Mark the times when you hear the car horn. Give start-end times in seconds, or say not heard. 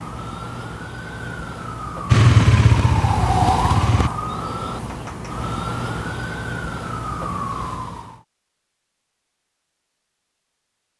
not heard.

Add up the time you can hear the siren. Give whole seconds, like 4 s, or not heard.
8 s.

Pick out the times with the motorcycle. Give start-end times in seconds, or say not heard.
2.1-4.1.